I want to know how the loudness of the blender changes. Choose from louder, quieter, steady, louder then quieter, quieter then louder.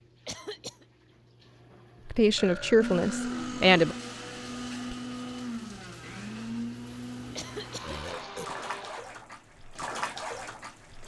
quieter.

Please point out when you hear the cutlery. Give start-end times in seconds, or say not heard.
not heard.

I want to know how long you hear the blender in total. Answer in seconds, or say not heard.
6 s.